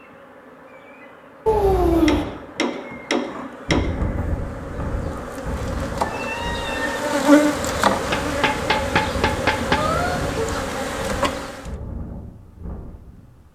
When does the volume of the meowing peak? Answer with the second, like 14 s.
2 s.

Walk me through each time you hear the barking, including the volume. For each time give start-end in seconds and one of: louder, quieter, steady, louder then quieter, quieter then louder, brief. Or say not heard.
not heard.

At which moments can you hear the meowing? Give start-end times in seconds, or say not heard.
1.4-2.2, 6.0-7.0, 9.8-10.4.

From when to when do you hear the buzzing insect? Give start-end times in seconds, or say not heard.
0.0-11.7.